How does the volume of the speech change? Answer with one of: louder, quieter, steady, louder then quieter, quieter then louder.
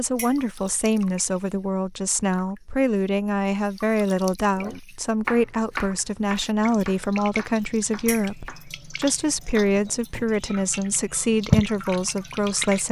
steady.